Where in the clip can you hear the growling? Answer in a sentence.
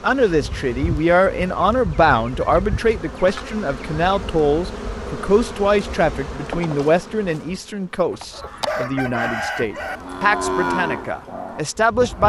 You can't hear the growling here.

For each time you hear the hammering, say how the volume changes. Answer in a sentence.
The hammering can't be heard in this clip.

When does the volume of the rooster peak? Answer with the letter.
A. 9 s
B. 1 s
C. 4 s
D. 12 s
A.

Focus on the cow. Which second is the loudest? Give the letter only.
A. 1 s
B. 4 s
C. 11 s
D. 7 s
C.